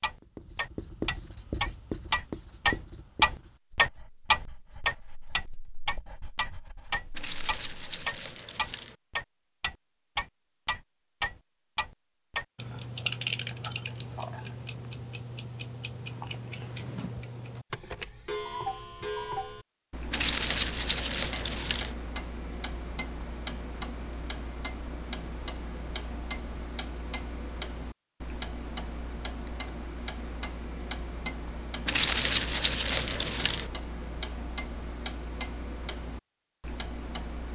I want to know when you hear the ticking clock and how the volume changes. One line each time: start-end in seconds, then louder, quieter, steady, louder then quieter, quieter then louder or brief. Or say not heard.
0.0-37.5 quieter.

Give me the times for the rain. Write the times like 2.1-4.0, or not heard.
not heard.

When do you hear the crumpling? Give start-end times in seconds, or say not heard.
7.1-8.9, 20.1-21.9, 31.9-33.7.